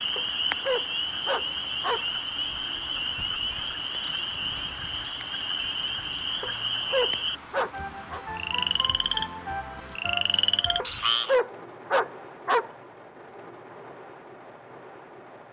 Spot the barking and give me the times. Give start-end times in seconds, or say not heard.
0.1-2.0, 6.4-8.2, 10.8-12.7.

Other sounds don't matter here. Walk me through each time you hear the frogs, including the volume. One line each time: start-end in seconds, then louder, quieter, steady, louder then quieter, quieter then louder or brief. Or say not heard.
0.0-11.4 steady.